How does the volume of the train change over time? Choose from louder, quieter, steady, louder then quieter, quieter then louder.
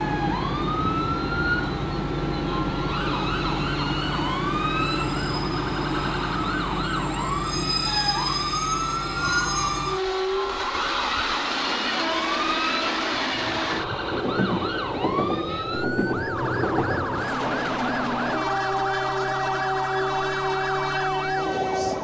steady.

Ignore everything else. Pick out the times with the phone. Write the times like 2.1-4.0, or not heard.
not heard.